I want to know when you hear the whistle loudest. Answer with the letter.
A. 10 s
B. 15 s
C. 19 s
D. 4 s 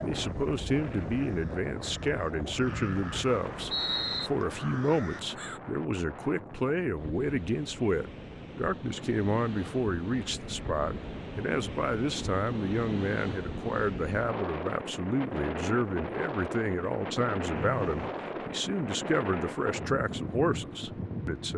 D.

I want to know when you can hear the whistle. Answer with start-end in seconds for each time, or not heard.
2.6-4.3, 17.6-18.1.